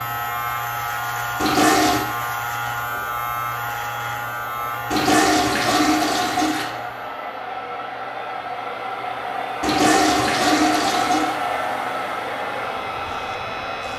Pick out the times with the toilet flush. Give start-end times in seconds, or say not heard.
1.4-2.0, 4.9-6.7, 9.6-11.3.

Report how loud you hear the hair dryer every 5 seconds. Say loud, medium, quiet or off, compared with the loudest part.
medium, loud, loud.